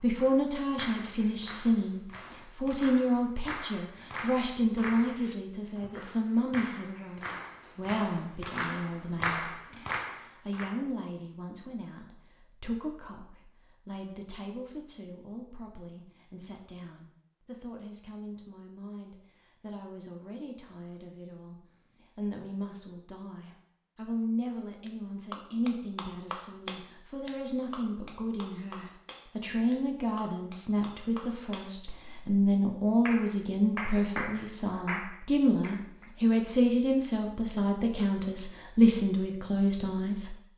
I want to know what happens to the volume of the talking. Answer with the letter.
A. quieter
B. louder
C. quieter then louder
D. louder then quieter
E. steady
C.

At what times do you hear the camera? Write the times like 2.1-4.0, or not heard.
not heard.